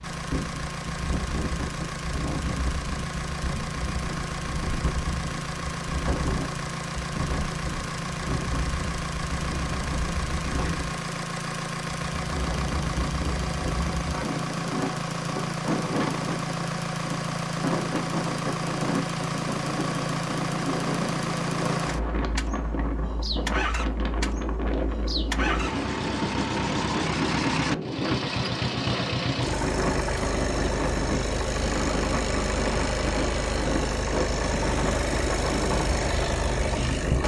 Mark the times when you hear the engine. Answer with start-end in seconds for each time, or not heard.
0.0-37.2.